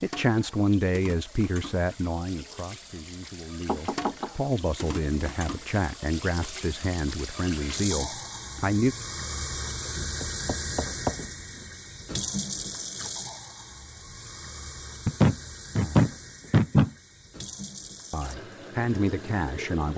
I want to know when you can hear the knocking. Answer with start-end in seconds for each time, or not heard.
3.6-4.3, 10.2-11.3, 15.1-16.9.